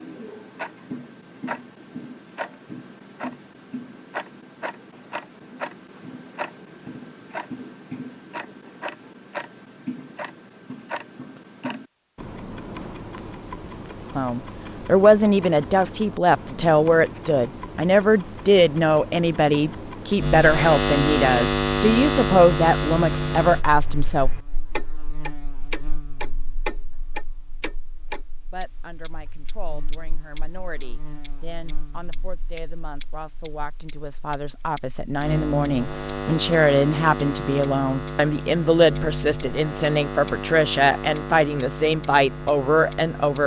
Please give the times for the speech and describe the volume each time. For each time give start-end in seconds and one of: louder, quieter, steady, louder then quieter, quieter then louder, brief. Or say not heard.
14.2-24.3 steady
28.5-43.4 louder.